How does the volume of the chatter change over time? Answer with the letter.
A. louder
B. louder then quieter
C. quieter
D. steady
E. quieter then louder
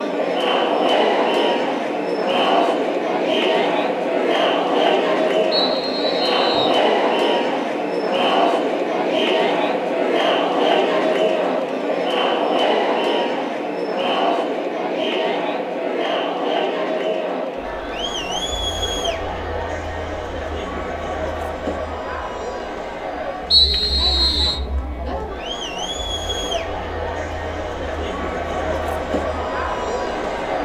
C.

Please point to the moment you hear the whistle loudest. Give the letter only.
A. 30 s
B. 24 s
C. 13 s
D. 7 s
B.